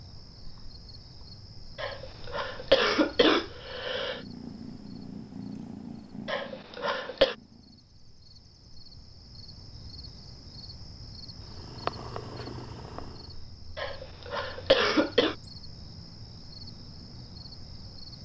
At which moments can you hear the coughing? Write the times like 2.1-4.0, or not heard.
1.8-4.2, 6.2-7.3, 13.8-15.3.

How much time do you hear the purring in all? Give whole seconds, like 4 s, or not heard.
6 s.